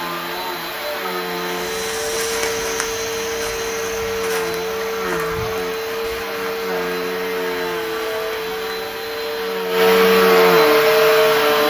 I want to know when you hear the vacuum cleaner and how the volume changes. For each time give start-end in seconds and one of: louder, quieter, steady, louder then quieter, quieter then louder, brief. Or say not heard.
0.0-11.6 louder.